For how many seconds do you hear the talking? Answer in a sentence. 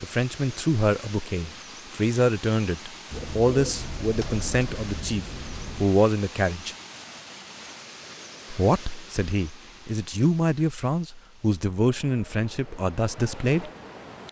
The talking can be heard for 12 seconds in total.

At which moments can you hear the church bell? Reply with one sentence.
You can't hear the church bell here.